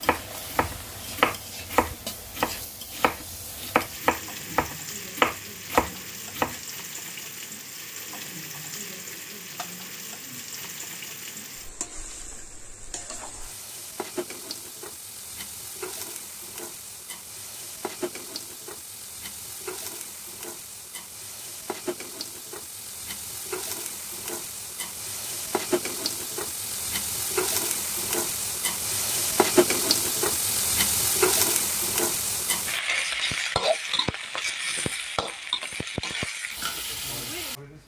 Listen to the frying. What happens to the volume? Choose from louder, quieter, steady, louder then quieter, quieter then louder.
louder.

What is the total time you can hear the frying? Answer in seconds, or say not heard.
38 s.